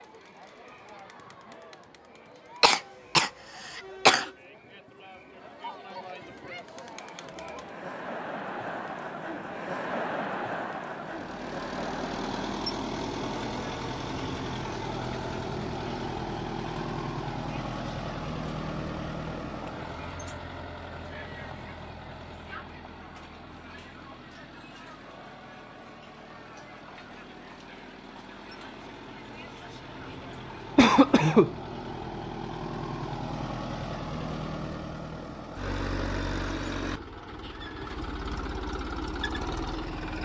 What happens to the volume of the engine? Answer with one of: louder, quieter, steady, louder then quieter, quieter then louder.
quieter then louder.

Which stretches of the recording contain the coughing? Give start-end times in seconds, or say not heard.
2.6-4.3, 30.8-31.5.